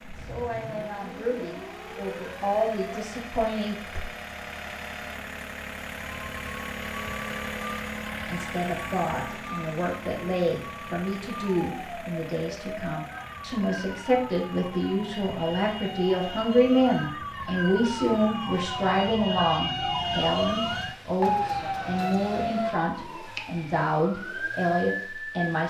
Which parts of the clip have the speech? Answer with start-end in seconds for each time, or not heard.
0.0-4.0, 8.2-25.6.